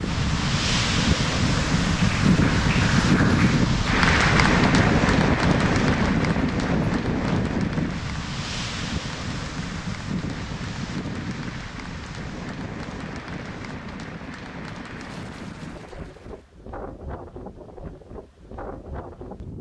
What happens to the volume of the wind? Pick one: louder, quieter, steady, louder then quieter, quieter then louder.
quieter.